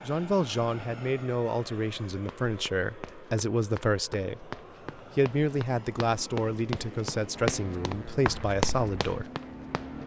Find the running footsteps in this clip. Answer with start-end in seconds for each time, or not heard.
2.1-9.9.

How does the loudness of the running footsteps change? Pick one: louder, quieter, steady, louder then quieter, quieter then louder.
louder.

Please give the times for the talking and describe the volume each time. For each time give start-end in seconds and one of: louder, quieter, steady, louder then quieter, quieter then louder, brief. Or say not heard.
0.0-9.3 steady.